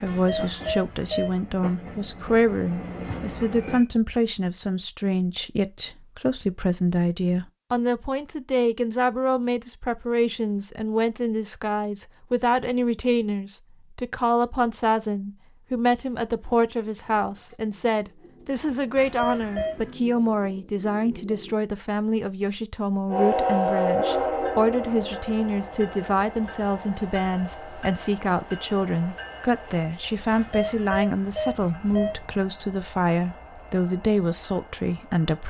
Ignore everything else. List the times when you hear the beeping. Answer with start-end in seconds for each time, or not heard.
0.1-1.4, 18.9-19.9, 30.3-32.3.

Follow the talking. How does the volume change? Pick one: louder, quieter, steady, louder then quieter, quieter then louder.
steady.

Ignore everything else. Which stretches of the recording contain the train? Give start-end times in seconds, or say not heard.
0.0-3.9, 23.1-35.4.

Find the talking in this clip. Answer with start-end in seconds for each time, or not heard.
0.0-35.4.